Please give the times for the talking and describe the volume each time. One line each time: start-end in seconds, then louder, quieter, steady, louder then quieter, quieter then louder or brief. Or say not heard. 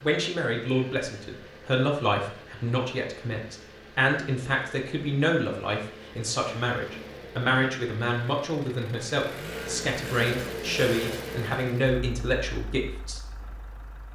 0.0-13.2 steady.